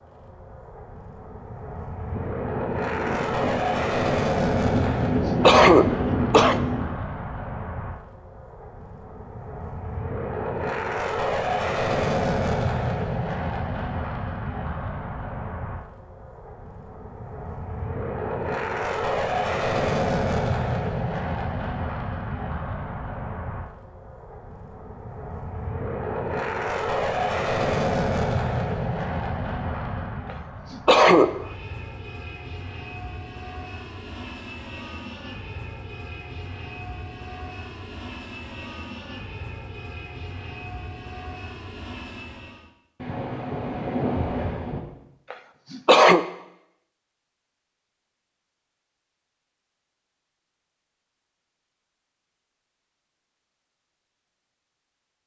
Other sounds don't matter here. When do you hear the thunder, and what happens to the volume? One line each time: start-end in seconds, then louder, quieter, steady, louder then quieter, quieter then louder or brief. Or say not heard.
2.1-7.0 louder
43.0-44.8 brief.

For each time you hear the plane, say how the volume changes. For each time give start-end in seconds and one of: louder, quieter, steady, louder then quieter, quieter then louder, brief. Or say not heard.
0.0-42.7 quieter.